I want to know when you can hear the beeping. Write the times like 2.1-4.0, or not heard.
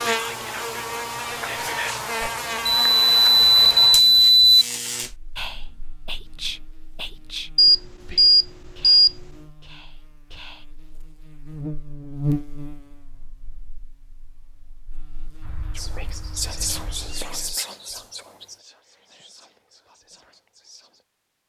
2.6-4.7, 7.5-9.2, 15.4-17.2.